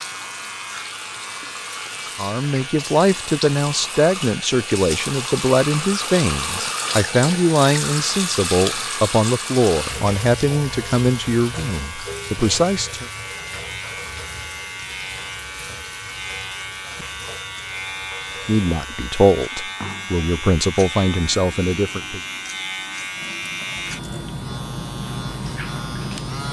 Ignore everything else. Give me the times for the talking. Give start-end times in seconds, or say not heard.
2.1-13.1, 18.4-22.2.